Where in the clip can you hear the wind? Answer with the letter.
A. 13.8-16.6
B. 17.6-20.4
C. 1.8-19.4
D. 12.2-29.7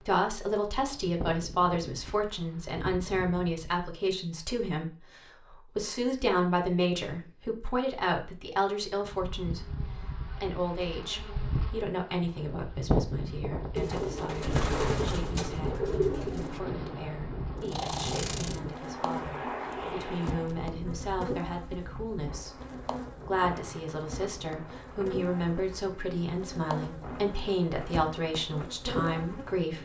D.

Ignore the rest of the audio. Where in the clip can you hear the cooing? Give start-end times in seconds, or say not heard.
13.8-16.6.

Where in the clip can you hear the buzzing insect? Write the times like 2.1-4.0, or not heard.
0.0-3.8, 9.1-29.7.